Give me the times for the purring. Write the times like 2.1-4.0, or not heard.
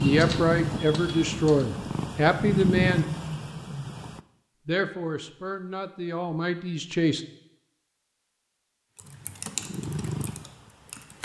0.0-4.2, 9.0-11.2.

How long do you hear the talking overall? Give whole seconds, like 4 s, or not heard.
6 s.